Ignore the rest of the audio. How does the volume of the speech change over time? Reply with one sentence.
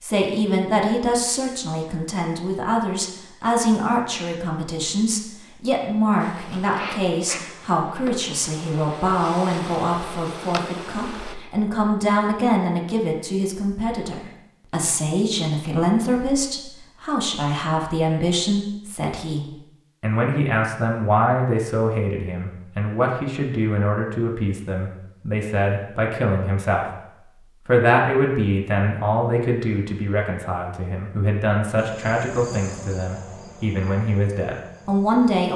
The loudness of the speech stays about the same.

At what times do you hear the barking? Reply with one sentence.
The barking can't be heard in this clip.